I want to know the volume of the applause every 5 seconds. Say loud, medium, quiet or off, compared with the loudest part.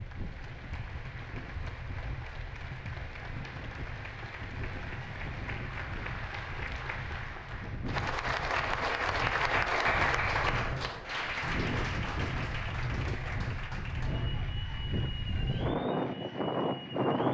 quiet, loud, loud, quiet.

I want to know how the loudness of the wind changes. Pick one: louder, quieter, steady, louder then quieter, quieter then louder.
louder.